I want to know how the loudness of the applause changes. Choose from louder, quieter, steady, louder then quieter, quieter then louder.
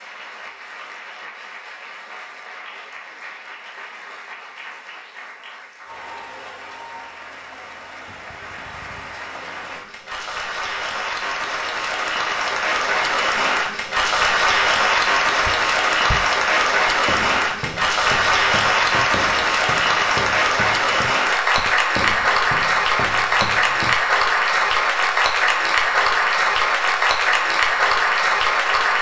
louder.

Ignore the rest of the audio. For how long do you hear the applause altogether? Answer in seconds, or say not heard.
29 s.